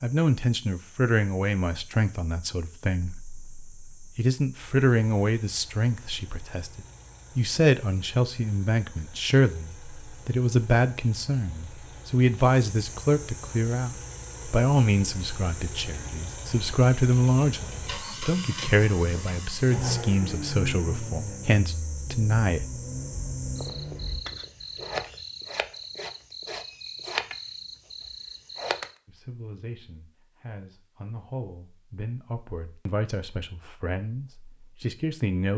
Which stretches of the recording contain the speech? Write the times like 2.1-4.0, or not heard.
0.0-22.6, 29.1-35.5.